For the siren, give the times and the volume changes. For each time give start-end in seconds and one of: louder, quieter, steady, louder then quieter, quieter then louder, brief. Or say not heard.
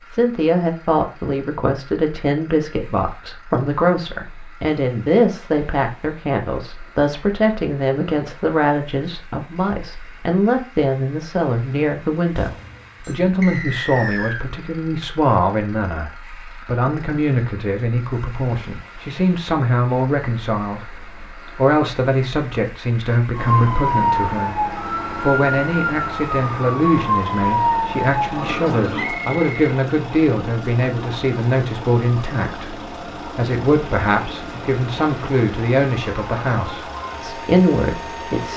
23.3-38.5 quieter.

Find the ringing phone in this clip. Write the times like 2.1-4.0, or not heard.
12.3-13.2.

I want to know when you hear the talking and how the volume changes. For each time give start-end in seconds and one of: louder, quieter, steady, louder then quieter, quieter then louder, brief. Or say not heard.
0.1-38.5 steady.